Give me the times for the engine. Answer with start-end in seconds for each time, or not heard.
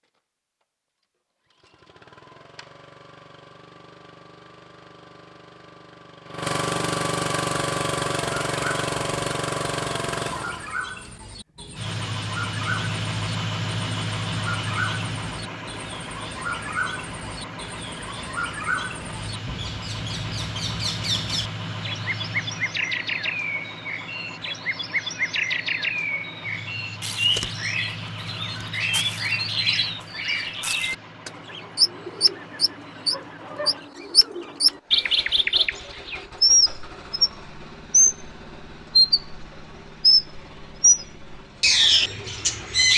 0.0-42.9.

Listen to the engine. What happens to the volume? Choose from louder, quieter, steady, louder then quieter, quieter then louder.
quieter.